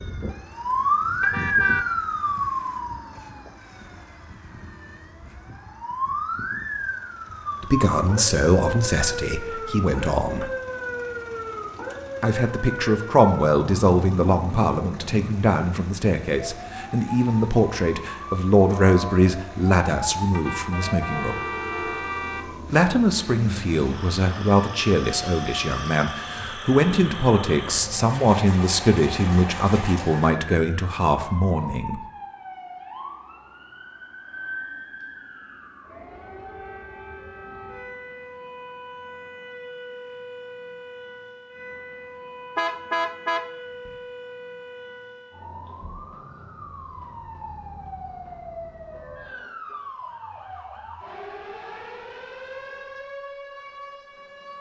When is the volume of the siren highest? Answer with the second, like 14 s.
1 s.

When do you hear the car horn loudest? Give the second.
43 s.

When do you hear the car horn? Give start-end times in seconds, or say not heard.
1.2-1.9, 20.3-22.6, 42.5-43.9.